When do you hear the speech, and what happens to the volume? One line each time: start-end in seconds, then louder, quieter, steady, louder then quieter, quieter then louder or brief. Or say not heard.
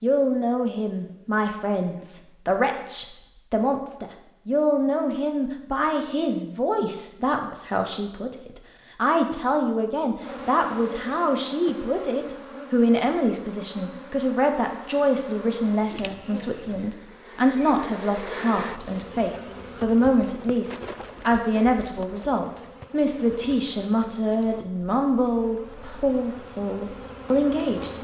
0.0-27.9 steady.